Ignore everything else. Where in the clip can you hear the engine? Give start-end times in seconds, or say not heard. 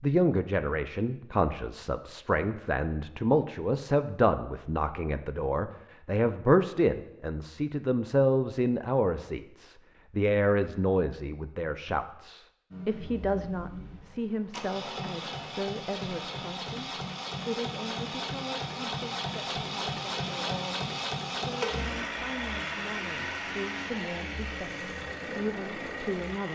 12.7-26.4.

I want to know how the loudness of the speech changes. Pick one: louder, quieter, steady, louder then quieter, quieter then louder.
quieter.